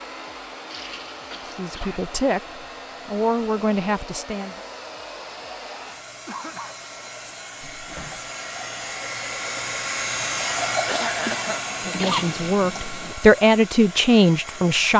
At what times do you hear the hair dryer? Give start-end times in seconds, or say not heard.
0.0-14.9.